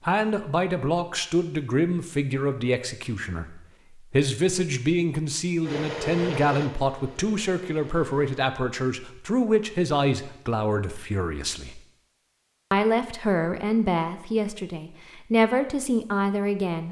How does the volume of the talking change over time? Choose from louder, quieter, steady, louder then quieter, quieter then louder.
steady.